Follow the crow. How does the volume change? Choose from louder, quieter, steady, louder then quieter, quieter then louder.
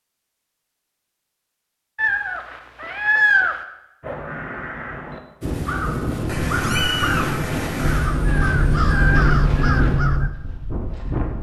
louder.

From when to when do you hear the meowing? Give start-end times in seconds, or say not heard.
1.9-3.6, 6.2-8.1.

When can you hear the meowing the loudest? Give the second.
3 s.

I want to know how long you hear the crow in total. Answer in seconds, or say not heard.
6 s.